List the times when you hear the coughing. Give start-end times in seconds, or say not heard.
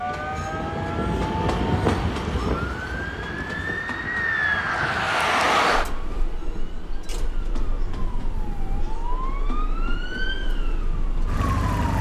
not heard.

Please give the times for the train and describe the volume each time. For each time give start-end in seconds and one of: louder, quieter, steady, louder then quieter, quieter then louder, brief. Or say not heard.
0.0-11.7 quieter.